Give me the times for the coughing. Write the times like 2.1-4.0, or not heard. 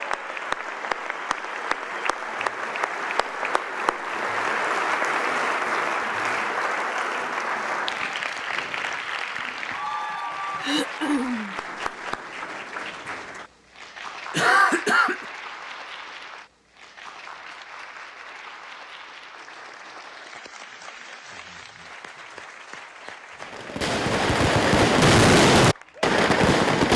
10.6-11.6, 14.3-15.2.